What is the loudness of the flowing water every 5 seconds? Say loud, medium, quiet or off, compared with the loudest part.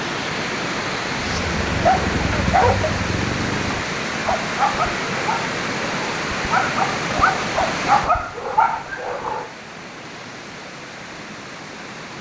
loud, loud, medium.